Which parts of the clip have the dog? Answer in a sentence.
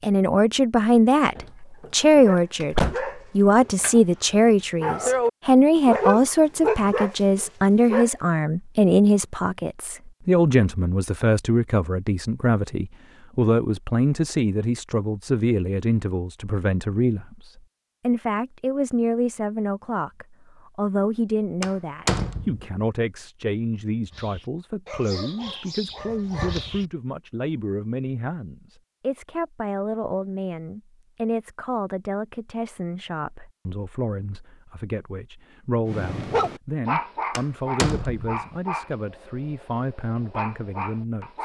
You can hear the dog from 2.2 to 8.2 s, from 24.1 to 26.9 s and from 35.9 to 41.3 s.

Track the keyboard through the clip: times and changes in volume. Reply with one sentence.
You can't hear the keyboard here.